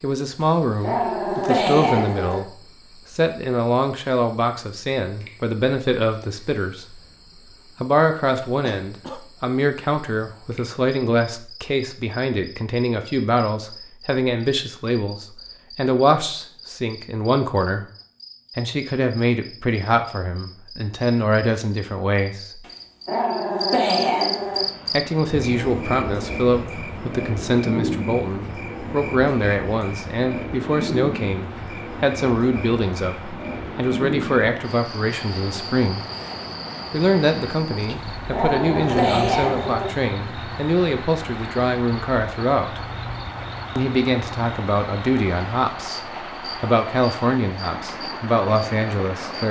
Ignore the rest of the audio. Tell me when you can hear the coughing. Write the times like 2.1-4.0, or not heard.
8.6-9.2.